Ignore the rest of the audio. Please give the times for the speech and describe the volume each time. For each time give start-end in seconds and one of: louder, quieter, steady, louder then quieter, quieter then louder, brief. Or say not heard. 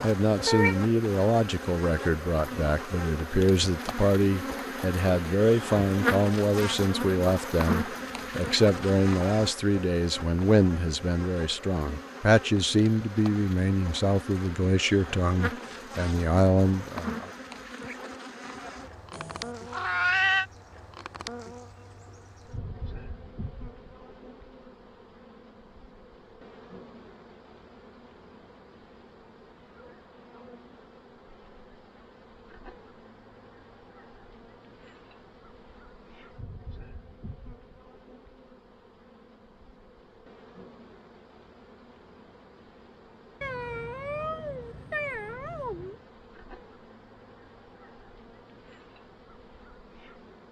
0.0-17.3 steady.